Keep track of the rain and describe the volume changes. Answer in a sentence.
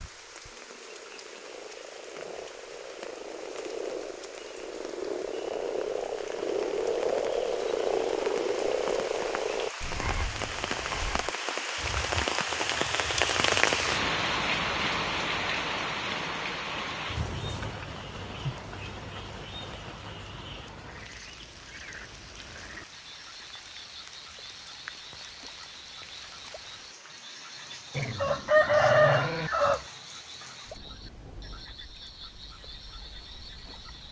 The volume of the rain goes up, then down.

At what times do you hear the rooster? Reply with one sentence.
You can hear the rooster from 28.1 to 29.8 s.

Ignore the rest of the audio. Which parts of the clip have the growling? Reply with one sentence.
The growling can be heard from 27.9 to 29.5 s.